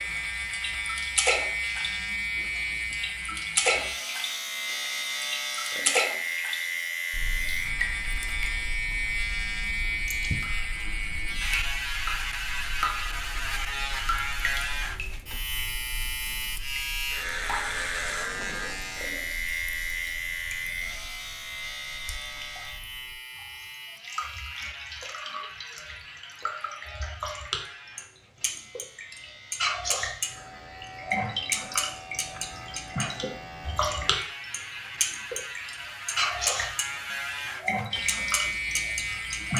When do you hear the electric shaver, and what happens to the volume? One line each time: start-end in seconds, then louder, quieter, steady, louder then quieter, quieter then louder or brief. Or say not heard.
0.0-39.5 quieter then louder.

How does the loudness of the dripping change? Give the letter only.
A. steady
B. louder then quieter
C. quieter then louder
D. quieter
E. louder
C.